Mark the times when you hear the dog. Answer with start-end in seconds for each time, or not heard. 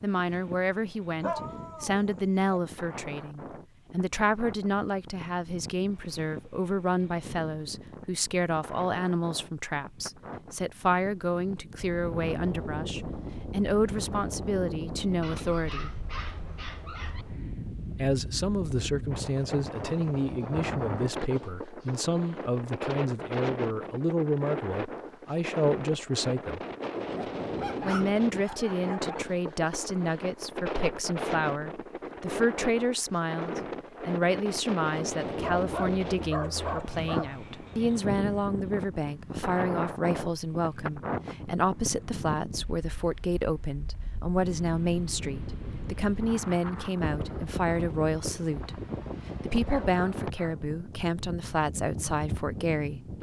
1.2-2.6, 15.2-17.2, 27.1-29.1, 35.4-37.4, 49.6-50.6.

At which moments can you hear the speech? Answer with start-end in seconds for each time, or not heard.
0.0-16.1, 17.9-26.6, 27.9-48.8, 49.4-53.0.